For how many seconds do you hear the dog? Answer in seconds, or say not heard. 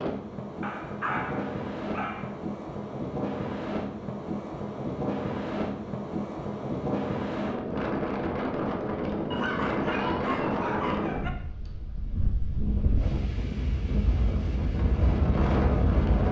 4 s.